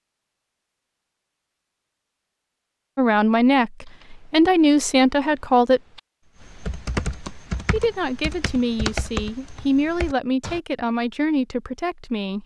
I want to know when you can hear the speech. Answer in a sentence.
You can hear the speech from 3.0 to 5.8 s and from 7.7 to 12.4 s.